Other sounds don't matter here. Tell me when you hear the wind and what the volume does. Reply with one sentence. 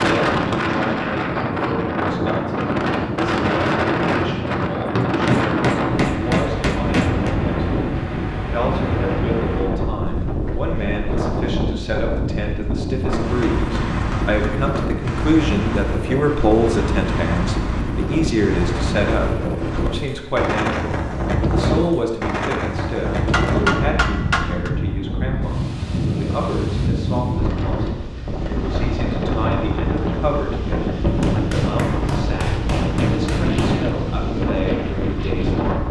The wind can be heard from 0.0 to 35.8 s, at a steady volume.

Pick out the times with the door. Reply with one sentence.
You can't hear the door here.